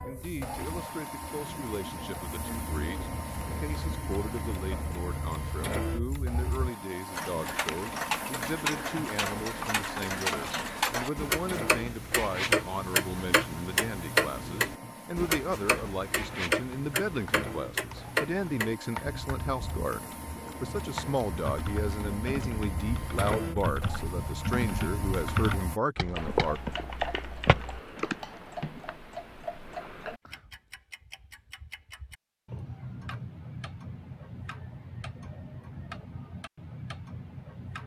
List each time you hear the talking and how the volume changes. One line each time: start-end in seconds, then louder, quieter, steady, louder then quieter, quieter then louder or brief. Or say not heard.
0.0-26.6 louder.